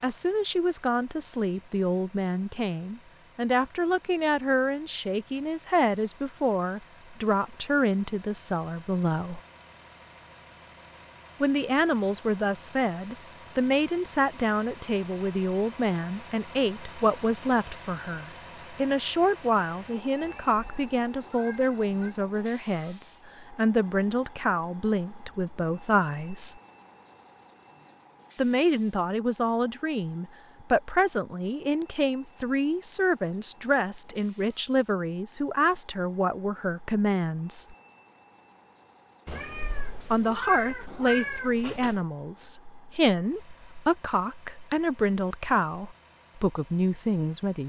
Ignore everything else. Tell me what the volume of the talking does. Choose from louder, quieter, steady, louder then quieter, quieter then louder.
steady.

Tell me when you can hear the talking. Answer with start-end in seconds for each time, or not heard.
0.0-9.4, 11.4-26.6, 28.4-37.8, 40.1-47.6.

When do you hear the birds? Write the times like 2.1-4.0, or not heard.
not heard.